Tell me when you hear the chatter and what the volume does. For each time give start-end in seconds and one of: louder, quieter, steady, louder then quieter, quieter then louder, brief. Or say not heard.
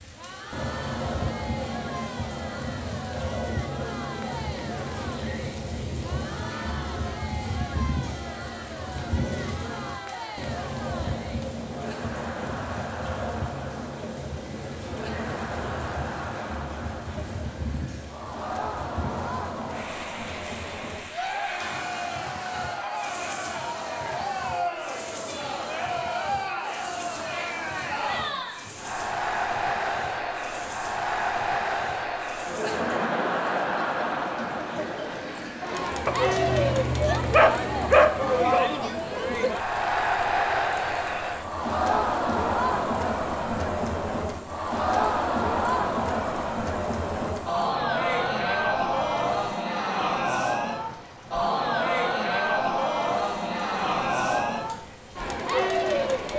0.0-56.3 louder.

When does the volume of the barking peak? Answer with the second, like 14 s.
38 s.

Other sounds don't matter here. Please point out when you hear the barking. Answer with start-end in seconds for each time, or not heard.
36.0-38.6.